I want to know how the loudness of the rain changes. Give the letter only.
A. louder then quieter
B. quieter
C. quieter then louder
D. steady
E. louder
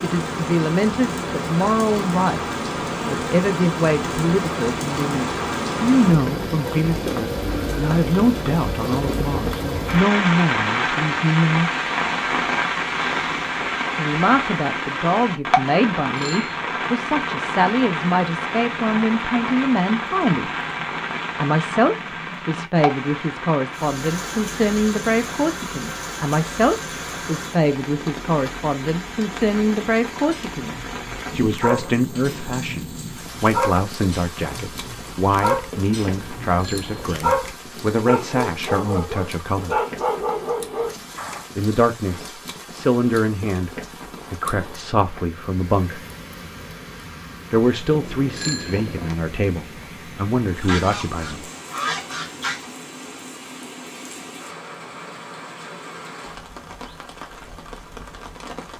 B.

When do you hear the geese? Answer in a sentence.
You can hear the geese from 50.6 to 52.6 s.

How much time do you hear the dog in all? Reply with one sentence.
You can hear the dog for 11 seconds altogether.